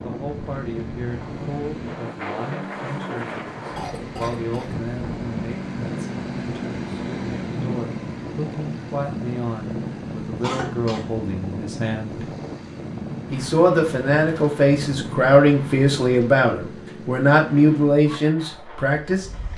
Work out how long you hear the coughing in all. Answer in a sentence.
You can hear the coughing for 2 seconds altogether.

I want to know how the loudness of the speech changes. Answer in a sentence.
The loudness of the speech goes up.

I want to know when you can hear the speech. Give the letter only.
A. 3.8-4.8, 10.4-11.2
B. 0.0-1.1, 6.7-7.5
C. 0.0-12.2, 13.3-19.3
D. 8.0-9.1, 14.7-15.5
C.